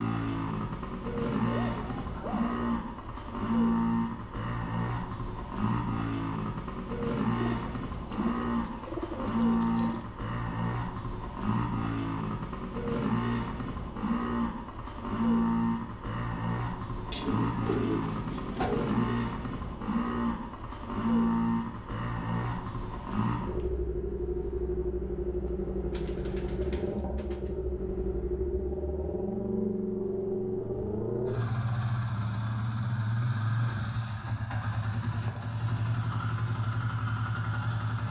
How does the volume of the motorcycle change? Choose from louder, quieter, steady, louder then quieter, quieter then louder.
steady.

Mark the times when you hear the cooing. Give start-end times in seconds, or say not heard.
7.3-10.1, 17.1-19.1, 25.9-27.5.